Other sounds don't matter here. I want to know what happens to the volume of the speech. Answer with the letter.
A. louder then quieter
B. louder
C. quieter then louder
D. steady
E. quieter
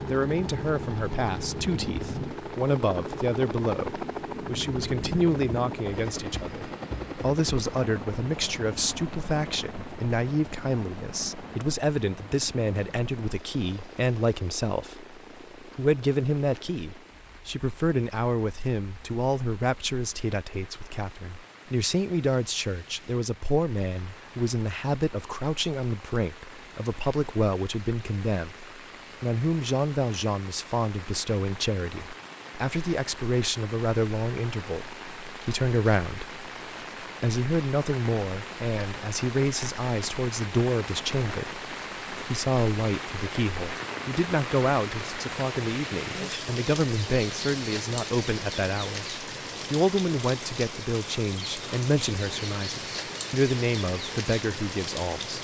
D.